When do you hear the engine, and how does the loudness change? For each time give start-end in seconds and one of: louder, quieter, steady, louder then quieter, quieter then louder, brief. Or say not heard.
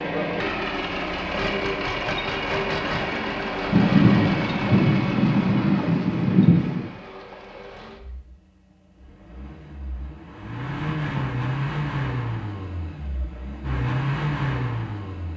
0.0-15.3 quieter then louder.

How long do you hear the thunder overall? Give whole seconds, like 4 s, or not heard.
3 s.